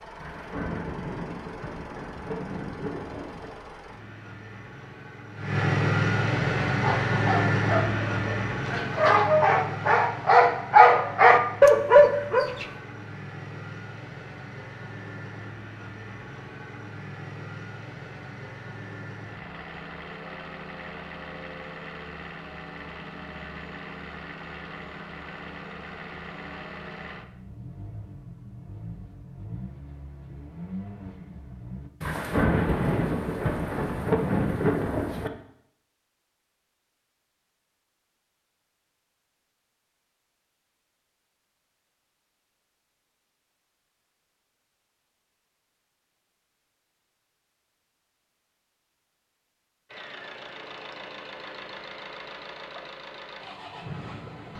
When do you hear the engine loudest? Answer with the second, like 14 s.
6 s.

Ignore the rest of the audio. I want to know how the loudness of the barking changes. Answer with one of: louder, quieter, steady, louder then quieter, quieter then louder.
louder.